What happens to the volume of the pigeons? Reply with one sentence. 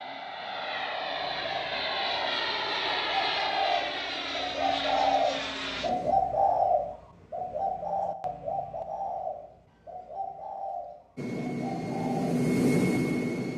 The loudness of the pigeons goes up, then down.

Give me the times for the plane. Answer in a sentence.
The plane can be heard from 0.0 to 6.2 s and from 11.2 to 13.5 s.